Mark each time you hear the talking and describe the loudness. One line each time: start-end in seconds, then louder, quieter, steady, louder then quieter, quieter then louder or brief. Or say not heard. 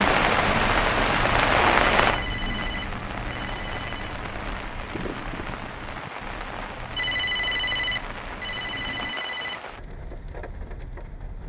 not heard.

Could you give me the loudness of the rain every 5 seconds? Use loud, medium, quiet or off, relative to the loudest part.
loud, quiet, quiet.